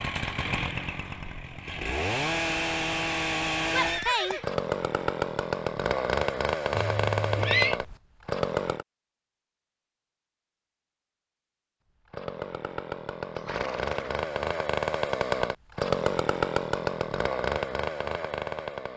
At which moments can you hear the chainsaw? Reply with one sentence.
The chainsaw can be heard from 0.0 to 8.8 s and from 12.1 to 18.9 s.